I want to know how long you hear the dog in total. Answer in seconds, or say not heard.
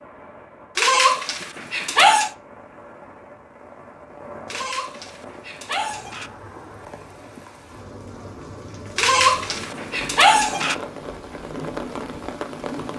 5 s.